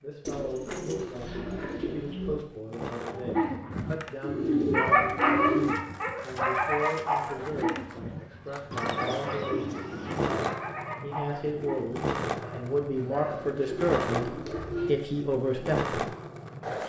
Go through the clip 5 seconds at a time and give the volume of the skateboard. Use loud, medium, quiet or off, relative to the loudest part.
medium, medium, loud, loud.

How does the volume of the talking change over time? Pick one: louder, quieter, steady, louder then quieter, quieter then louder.
louder.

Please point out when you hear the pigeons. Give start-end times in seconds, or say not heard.
0.2-2.5, 4.2-5.8, 8.7-10.6, 12.9-14.9.